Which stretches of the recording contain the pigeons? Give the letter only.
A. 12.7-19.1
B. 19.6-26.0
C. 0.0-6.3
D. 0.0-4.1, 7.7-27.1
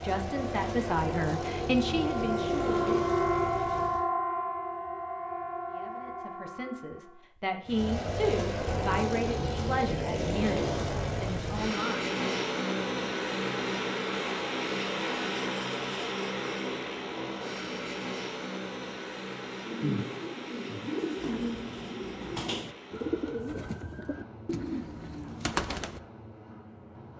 B.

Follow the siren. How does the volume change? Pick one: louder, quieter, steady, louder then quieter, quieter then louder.
louder then quieter.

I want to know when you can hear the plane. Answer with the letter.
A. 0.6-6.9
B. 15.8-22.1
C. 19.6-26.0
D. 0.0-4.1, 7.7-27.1
D.